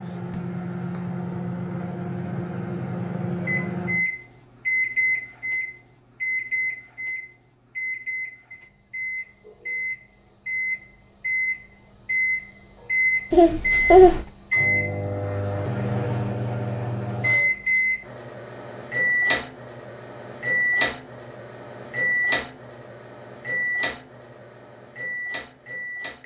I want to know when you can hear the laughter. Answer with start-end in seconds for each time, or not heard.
13.3-14.2.